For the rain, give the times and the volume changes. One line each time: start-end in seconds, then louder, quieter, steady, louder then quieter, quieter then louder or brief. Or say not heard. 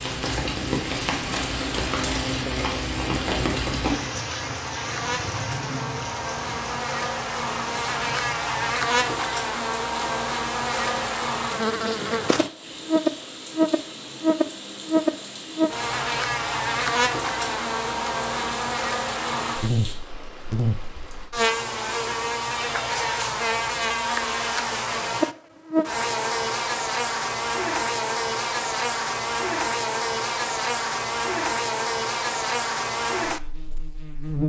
0.0-21.3 quieter.